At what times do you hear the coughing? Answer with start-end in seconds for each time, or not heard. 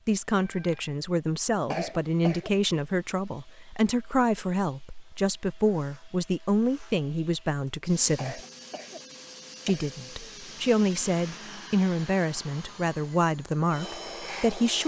1.7-2.5, 8.2-9.9.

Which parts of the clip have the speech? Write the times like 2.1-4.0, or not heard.
0.1-8.4, 9.7-14.8.